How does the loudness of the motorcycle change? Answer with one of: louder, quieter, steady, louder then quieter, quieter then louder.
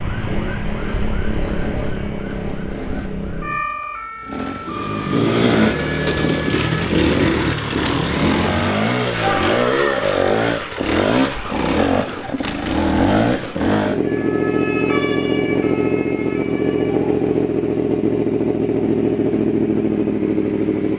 louder.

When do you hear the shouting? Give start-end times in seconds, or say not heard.
9.2-10.1.